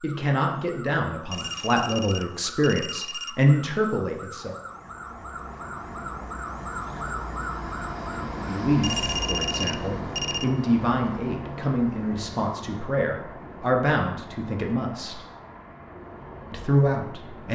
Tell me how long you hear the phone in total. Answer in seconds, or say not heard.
4 s.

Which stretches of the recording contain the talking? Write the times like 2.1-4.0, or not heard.
0.0-4.5, 8.3-15.2, 16.5-17.5.